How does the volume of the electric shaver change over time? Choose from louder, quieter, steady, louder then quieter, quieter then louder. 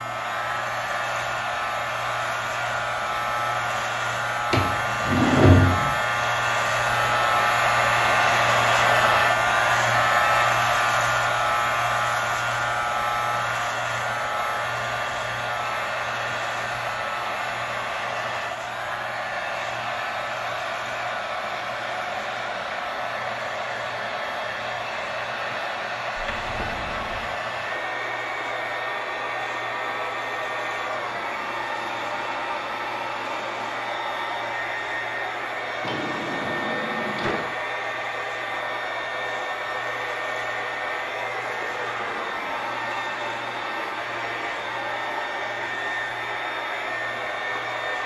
quieter.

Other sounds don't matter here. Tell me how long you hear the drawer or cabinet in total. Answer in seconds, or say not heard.
4 s.